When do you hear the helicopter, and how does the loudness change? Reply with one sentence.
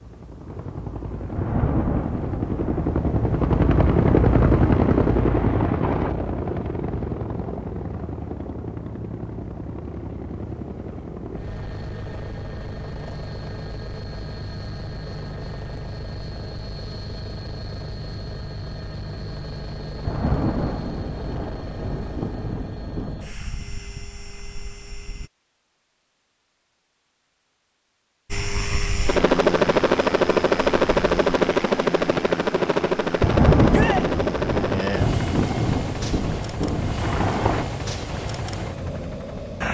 You can hear the helicopter from 0.0 to 25.3 s, getting quieter; and from 28.3 to 39.6 s, getting quieter.